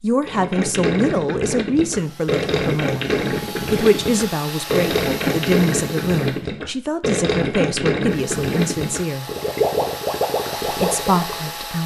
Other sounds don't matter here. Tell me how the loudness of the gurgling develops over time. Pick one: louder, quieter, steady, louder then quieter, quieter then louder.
steady.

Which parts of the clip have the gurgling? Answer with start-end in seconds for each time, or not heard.
0.2-11.5.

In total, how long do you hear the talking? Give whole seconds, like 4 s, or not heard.
10 s.